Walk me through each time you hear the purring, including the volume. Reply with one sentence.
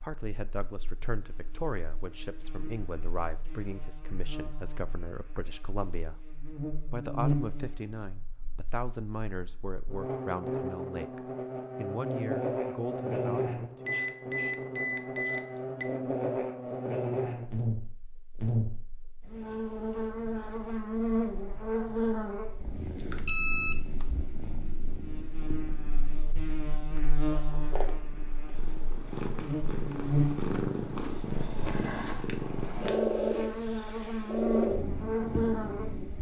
The purring can be heard from 22.5 to 36.1 s, getting louder.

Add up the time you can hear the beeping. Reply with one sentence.
The beeping can be heard for 3 seconds in total.